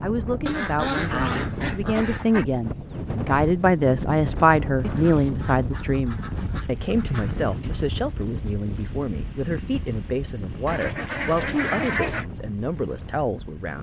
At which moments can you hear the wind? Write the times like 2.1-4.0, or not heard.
0.0-13.7.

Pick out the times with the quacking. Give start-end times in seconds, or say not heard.
0.5-2.5, 4.8-7.5, 10.7-12.2.